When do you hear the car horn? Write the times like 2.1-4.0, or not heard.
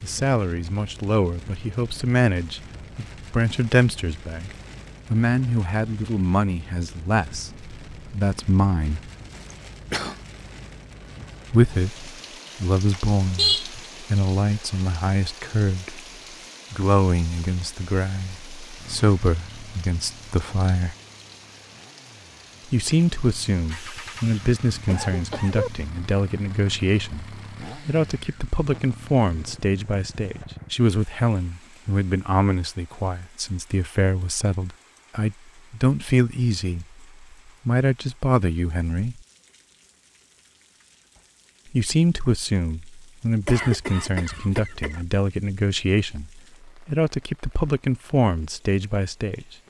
12.9-13.7.